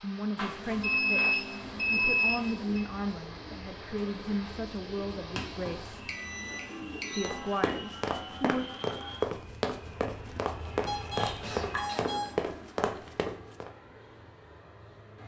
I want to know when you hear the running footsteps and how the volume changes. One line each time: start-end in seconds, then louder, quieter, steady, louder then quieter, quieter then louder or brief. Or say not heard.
7.2-13.7 steady.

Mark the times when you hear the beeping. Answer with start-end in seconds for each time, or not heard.
0.3-2.9, 5.3-7.4, 10.8-12.3.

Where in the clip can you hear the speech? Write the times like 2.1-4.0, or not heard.
0.0-6.0, 7.2-8.7.